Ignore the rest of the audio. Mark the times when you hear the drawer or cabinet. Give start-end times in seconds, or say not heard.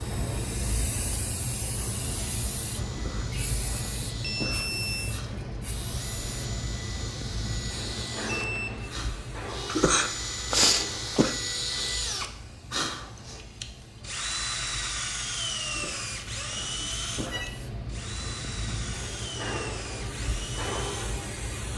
not heard.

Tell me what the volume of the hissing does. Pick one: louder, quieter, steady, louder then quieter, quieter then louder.
quieter then louder.